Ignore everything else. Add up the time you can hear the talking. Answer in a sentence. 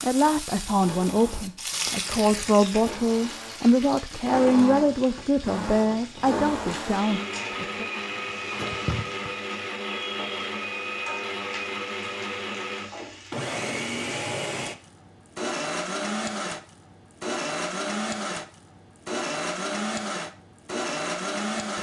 You can hear the talking for 8 seconds altogether.